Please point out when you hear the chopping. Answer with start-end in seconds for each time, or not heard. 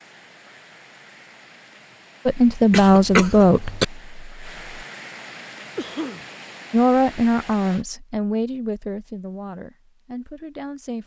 not heard.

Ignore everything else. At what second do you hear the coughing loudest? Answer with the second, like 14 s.
3 s.